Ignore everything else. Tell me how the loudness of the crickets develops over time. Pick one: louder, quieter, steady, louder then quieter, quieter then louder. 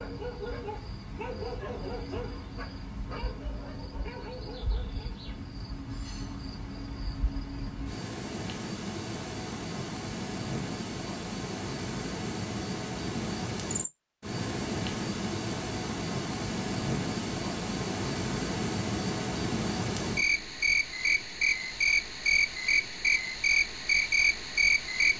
louder.